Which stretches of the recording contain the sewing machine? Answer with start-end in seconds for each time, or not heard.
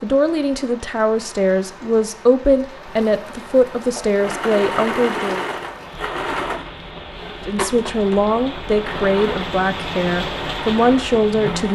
4.0-11.7.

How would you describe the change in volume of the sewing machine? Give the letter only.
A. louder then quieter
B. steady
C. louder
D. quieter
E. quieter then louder
D.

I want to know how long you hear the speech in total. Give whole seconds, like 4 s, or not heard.
10 s.